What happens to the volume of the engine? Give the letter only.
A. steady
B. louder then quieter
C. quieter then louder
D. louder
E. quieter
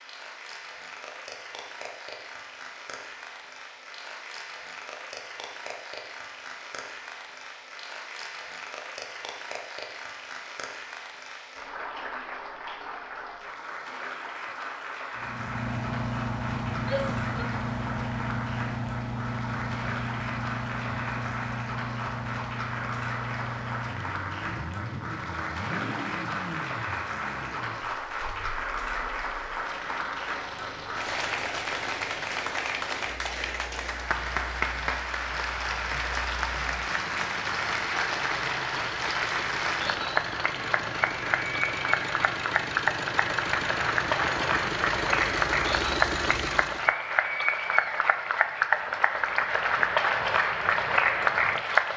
C.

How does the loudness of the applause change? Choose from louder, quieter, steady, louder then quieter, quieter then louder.
louder.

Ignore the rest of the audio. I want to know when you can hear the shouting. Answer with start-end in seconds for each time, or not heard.
16.8-17.4.